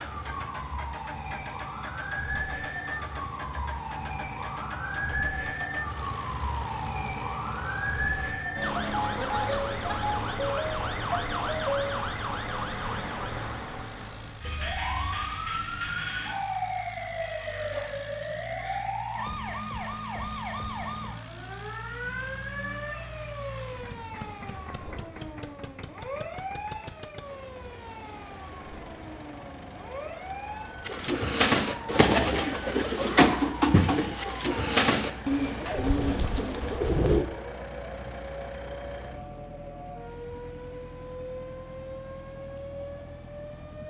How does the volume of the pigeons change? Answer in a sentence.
The loudness of the pigeons goes down.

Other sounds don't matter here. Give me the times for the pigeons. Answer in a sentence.
You can hear the pigeons from 30.9 to 37.2 s.